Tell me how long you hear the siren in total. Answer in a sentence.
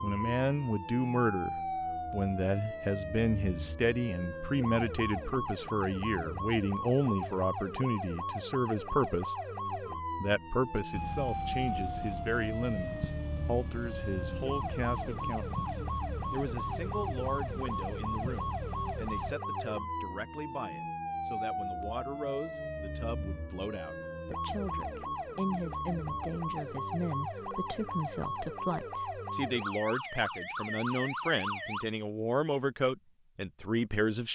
The siren can be heard for 32 seconds in total.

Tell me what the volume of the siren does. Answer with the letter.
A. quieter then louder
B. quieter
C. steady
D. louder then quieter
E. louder
C.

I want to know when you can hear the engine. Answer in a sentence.
You can hear the engine from 10.9 to 19.4 s.